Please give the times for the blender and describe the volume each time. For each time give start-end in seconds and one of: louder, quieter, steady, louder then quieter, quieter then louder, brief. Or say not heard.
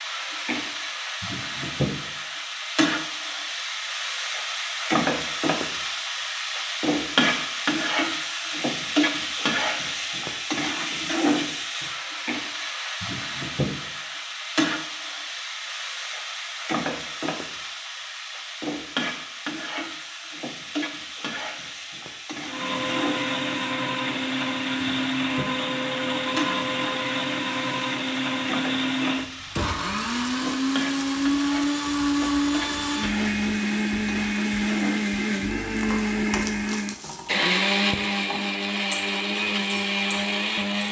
22.4-40.8 steady.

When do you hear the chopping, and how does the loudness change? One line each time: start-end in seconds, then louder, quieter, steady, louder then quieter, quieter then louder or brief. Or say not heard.
not heard.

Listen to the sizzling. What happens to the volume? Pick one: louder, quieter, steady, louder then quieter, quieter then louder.
quieter.